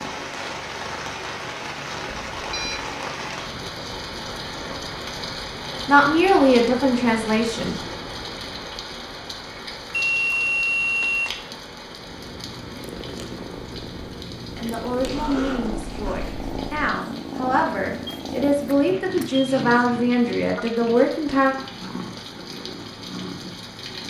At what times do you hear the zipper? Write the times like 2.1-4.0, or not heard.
15.0-16.8.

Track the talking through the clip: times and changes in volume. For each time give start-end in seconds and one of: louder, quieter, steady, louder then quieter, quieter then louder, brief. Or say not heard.
5.8-7.8 brief
14.6-21.6 louder.